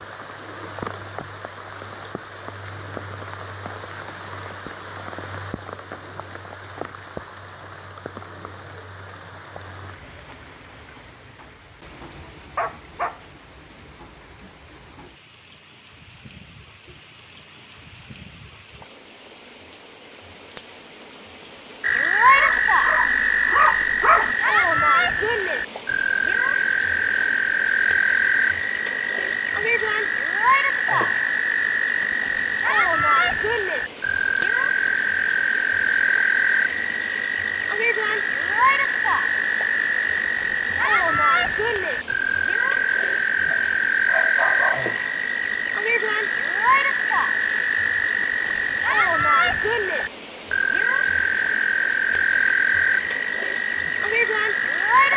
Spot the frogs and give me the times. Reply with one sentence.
The frogs can be heard from 21.8 to 55.1 s.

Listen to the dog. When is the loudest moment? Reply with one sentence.
The volume of the dog peaks at 24 seconds.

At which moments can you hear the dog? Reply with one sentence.
You can hear the dog from 12.2 to 13.2 s, from 22.4 to 24.4 s and from 43.5 to 44.9 s.